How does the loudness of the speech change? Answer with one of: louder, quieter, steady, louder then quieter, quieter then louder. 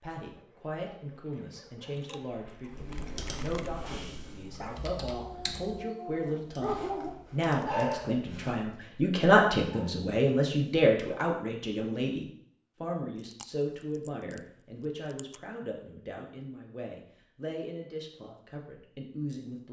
louder then quieter.